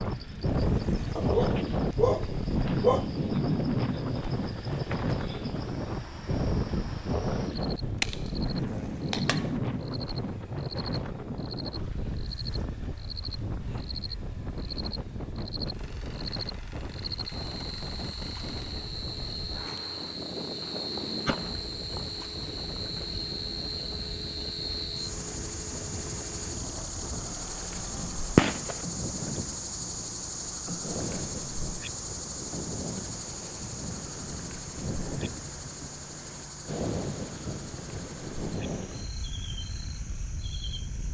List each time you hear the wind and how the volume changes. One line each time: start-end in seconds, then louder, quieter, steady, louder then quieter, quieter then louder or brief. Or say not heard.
0.0-41.1 quieter.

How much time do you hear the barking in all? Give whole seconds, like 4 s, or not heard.
2 s.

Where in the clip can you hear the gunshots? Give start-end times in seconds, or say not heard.
8.0-9.5, 20.6-23.2, 28.4-28.8.